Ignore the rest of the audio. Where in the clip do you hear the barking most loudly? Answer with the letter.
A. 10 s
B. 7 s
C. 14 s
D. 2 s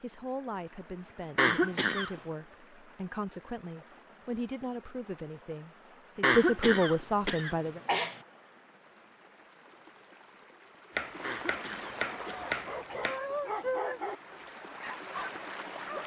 C.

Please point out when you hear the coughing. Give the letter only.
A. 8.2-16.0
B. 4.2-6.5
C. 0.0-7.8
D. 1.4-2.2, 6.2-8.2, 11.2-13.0
D.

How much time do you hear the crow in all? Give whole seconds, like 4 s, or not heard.
not heard.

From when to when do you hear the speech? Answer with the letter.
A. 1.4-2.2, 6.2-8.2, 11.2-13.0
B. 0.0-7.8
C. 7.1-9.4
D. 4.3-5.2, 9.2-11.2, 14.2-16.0
B.